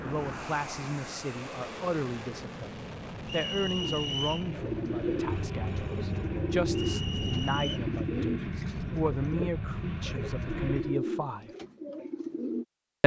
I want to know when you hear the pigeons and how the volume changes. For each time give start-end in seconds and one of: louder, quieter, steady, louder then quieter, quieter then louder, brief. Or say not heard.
3.8-12.7 steady.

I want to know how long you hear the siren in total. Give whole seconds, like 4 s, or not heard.
not heard.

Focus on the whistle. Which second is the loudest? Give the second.
4 s.